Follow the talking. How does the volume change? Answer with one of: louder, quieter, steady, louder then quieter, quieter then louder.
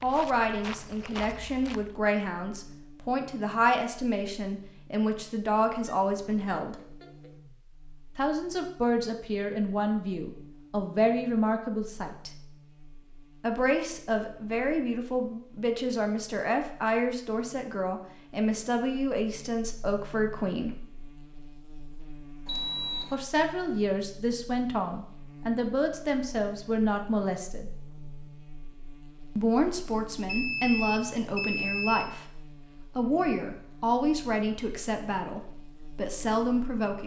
steady.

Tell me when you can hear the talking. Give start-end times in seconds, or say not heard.
0.0-6.8, 8.2-12.3, 13.4-20.8, 23.1-27.7, 29.4-37.0.